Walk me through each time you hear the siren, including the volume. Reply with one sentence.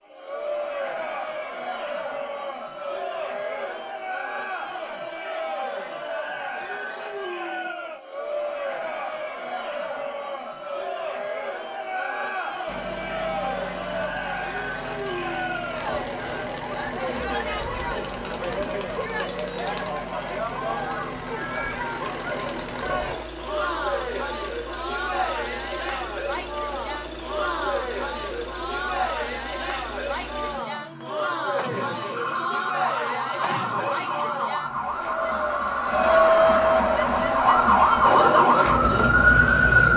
You can hear the siren from 32.1 to 39.9 s, getting louder.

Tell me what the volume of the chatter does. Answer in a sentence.
The loudness of the chatter goes up.